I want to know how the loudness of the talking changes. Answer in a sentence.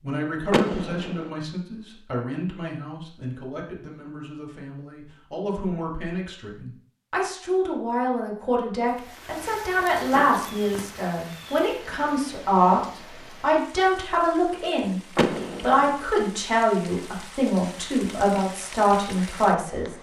The loudness of the talking goes up.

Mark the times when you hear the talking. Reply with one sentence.
The talking can be heard from 0.0 to 12.8 s and from 13.4 to 19.9 s.